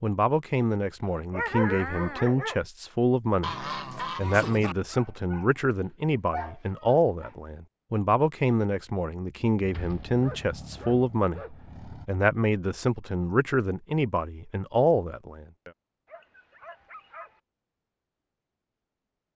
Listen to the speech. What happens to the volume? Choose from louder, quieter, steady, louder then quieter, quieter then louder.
steady.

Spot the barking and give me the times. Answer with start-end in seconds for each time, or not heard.
1.0-2.6, 4.9-5.5, 6.3-7.3, 9.7-11.9, 16.1-17.4.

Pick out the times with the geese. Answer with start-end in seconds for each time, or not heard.
3.4-4.8.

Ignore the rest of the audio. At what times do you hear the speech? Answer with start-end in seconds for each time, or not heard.
0.0-15.7.